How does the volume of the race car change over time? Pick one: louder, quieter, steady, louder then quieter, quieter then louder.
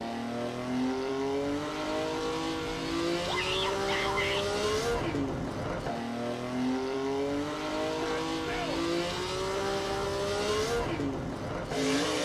steady.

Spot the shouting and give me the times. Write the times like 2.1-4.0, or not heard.
3.2-4.5, 7.8-8.8.